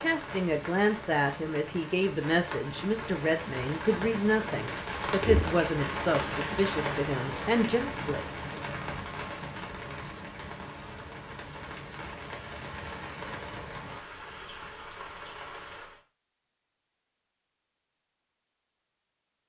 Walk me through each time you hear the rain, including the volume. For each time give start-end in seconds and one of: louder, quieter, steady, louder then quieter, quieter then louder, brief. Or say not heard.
0.0-16.0 louder then quieter.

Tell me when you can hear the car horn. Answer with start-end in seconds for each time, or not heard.
not heard.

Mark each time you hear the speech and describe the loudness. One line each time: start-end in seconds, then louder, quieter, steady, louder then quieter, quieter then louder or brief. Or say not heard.
0.0-8.8 steady.